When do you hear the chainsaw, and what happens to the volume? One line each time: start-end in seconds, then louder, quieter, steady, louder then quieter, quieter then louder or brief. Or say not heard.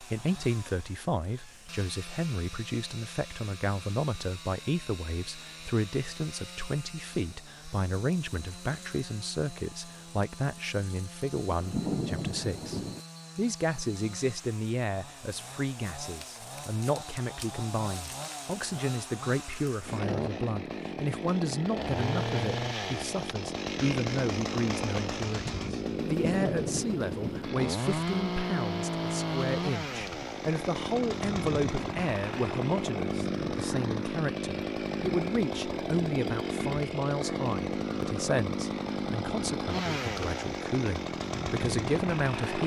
0.0-42.6 louder.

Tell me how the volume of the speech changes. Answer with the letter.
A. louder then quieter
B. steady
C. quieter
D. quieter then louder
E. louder
B.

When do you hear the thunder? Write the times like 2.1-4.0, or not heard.
11.5-13.0, 26.1-27.5.